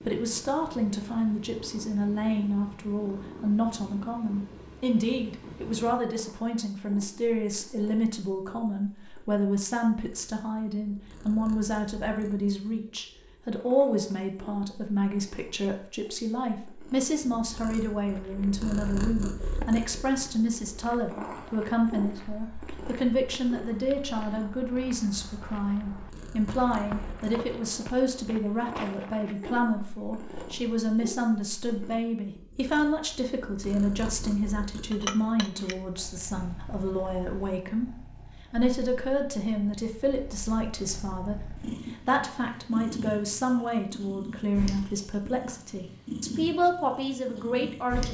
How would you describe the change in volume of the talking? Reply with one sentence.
The volume of the talking stays about the same.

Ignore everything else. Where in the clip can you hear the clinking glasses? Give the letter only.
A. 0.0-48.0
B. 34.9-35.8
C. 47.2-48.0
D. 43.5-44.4
B.